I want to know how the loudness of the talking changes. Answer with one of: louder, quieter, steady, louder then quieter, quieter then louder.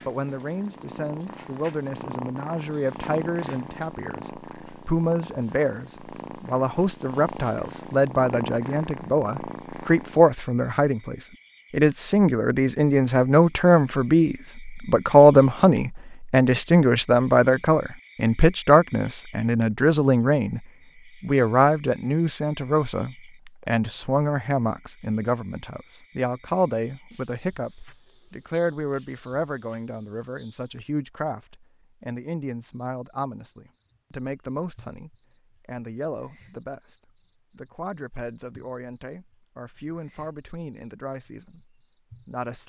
louder then quieter.